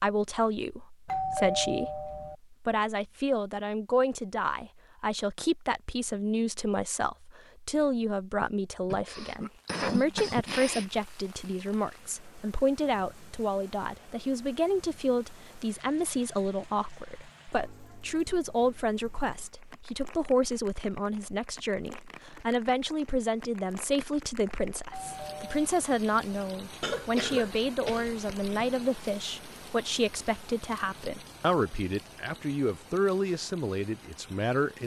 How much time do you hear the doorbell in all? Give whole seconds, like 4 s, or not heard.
2 s.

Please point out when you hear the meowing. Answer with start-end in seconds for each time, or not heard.
not heard.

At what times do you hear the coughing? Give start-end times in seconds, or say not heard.
8.9-10.8, 26.8-28.6.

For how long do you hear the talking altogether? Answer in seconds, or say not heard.
35 s.